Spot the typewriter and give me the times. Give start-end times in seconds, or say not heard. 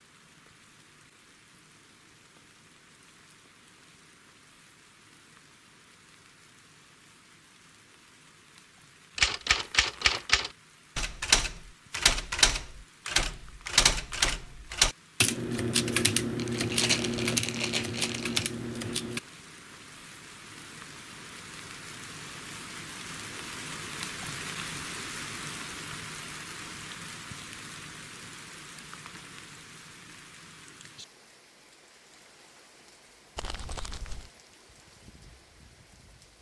9.2-19.2.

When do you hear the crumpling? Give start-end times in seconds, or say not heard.
9.4-10.3, 16.4-18.5, 33.4-34.3.